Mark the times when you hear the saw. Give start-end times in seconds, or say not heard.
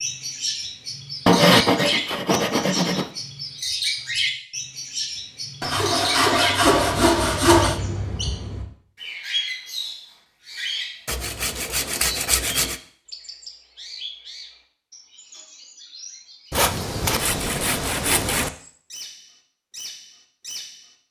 1.2-3.1, 5.6-7.8, 11.1-12.8, 16.5-18.5.